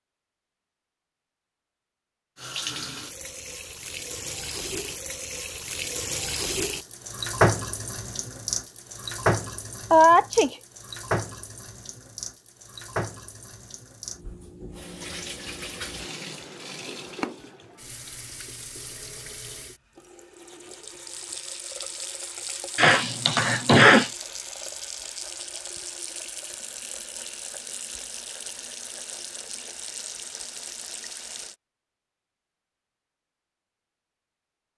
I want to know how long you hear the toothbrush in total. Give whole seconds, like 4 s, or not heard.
not heard.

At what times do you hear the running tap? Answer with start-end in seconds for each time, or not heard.
2.4-31.6.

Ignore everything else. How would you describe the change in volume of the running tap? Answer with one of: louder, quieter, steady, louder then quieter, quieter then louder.
quieter.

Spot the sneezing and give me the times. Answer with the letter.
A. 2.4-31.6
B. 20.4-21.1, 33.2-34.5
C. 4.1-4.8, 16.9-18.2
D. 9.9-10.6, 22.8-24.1
D.